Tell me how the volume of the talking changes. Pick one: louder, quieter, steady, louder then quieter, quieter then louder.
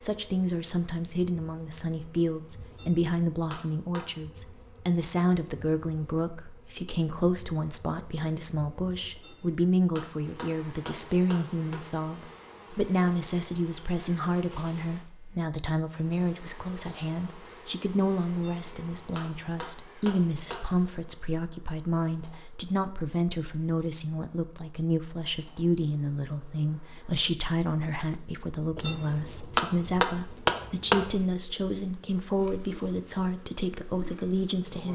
steady.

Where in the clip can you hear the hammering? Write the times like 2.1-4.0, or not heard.
2.7-4.0, 9.2-11.8, 18.4-20.6, 28.8-30.9.